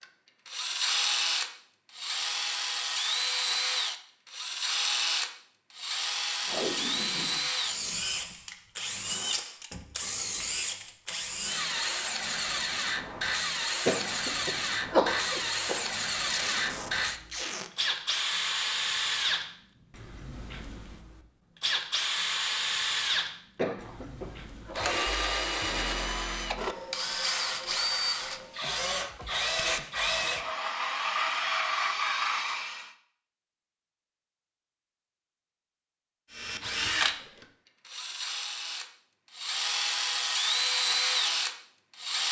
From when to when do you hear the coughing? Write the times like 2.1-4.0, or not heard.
13.8-15.9, 23.6-24.8.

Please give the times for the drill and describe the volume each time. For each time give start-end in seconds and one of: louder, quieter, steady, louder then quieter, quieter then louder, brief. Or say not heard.
0.0-32.9 steady
36.3-42.2 quieter then louder.